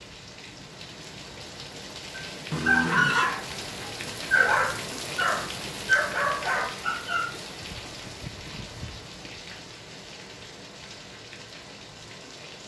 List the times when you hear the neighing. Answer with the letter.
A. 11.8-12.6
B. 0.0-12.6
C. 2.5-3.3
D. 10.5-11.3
C.